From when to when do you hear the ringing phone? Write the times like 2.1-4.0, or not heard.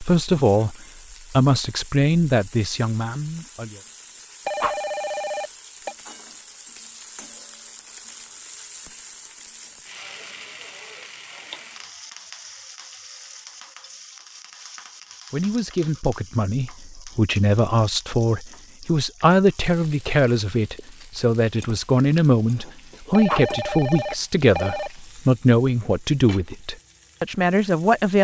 4.5-6.0, 23.1-24.9.